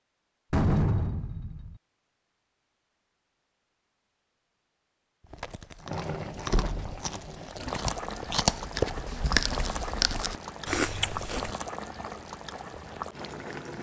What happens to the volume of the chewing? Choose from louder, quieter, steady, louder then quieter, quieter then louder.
louder.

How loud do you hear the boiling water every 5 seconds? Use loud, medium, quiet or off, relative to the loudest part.
off, loud, loud.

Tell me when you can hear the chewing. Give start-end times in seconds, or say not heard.
5.2-11.6.